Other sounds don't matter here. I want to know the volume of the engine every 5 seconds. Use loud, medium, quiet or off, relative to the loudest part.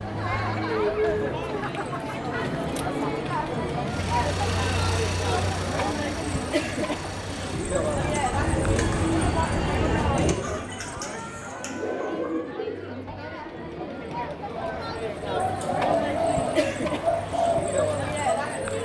loud, loud, off, off.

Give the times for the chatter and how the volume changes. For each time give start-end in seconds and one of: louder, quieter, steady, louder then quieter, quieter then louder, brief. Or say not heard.
0.0-18.8 quieter then louder.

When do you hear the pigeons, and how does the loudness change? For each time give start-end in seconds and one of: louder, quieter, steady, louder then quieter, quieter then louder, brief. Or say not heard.
8.0-18.6 quieter then louder.